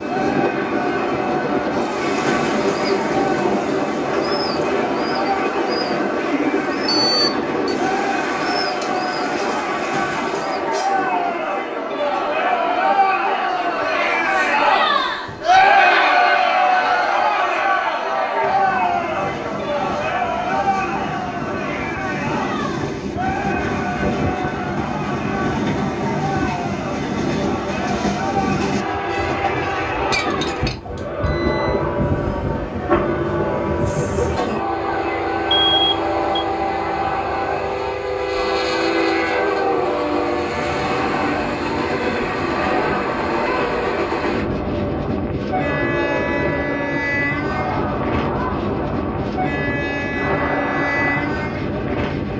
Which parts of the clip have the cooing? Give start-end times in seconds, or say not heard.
1.8-10.7.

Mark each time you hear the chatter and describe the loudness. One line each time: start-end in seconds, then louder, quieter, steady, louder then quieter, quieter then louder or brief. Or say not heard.
0.0-52.3 louder then quieter.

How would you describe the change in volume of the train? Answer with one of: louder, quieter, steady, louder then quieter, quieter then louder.
quieter then louder.